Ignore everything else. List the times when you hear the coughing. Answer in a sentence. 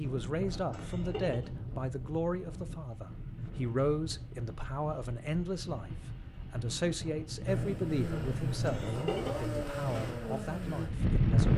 You can hear the coughing from 0.7 to 1.5 s and from 8.6 to 9.4 s.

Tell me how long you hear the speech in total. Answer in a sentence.
The speech can be heard for 11 seconds in total.